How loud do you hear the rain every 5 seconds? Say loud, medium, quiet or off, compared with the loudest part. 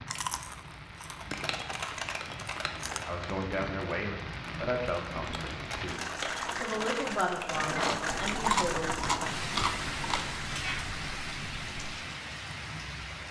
medium, loud, loud.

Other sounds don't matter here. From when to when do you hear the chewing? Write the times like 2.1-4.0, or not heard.
0.1-3.0, 7.5-10.4.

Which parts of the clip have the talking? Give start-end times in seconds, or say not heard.
2.6-9.0.